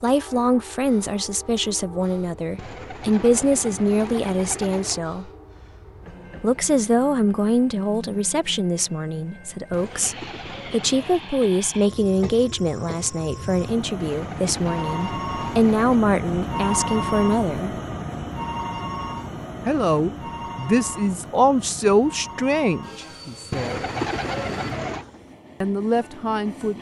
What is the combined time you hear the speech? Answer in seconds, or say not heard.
22 s.